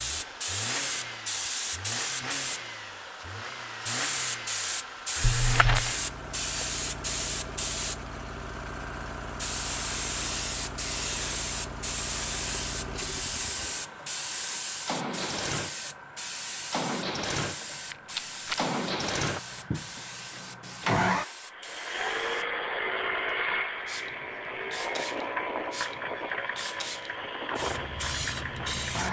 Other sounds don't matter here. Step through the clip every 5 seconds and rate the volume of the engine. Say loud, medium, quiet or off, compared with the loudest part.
medium, medium, medium, loud, loud, loud.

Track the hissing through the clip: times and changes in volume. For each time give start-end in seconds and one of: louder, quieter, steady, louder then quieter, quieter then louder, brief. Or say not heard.
0.0-29.0 quieter.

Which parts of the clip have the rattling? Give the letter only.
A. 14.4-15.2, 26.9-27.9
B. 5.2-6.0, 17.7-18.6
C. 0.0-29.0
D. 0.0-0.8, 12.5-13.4
B.